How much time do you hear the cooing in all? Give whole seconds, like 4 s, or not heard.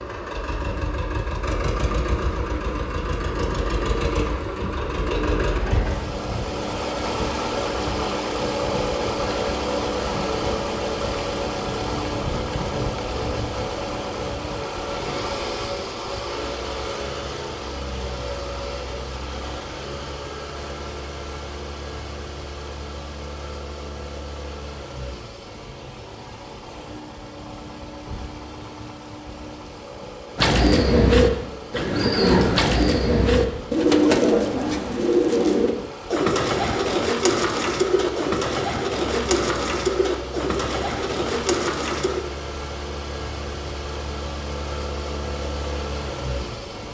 12 s.